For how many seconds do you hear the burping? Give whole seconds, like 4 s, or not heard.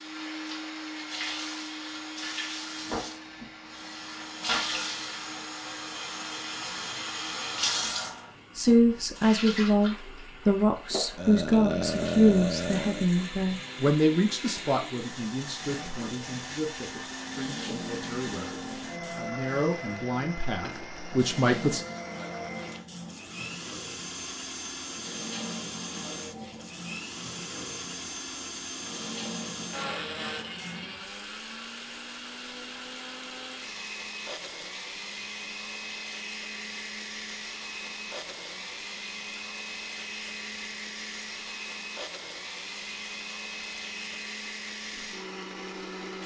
2 s.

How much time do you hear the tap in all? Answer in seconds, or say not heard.
45 s.